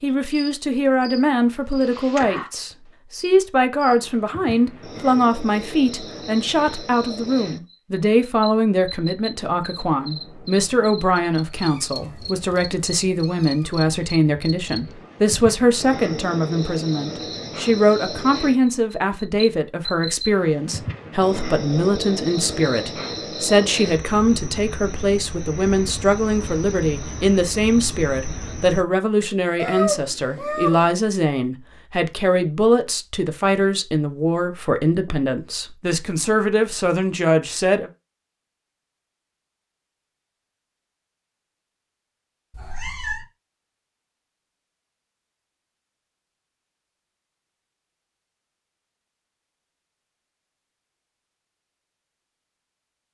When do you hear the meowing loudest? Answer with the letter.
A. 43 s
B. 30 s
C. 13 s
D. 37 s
B.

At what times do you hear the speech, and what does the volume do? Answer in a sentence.
You can hear the speech from 0.0 to 37.9 s, at a steady volume.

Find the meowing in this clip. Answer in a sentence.
The meowing can be heard from 11.5 to 13.8 s, from 29.6 to 30.9 s and from 42.5 to 43.2 s.